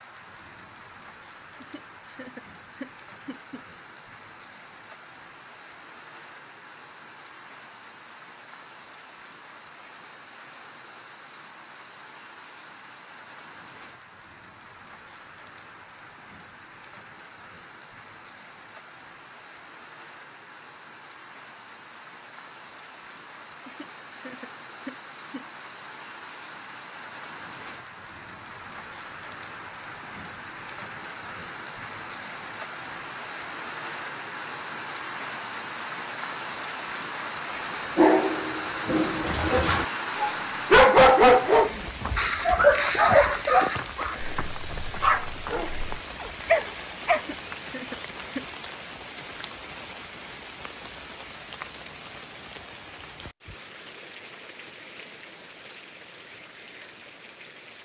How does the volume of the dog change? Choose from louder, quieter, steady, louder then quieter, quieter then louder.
louder then quieter.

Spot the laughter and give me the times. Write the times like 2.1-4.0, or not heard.
1.6-3.6, 23.6-25.4, 47.1-48.5.